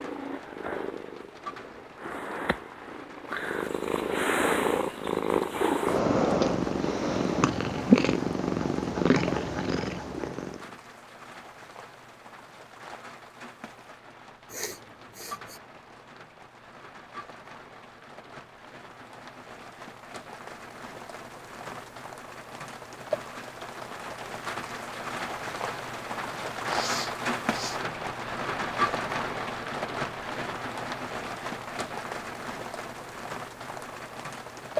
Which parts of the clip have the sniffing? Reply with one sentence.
You can hear the sniffing from 14.5 to 15.6 s and from 26.6 to 27.8 s.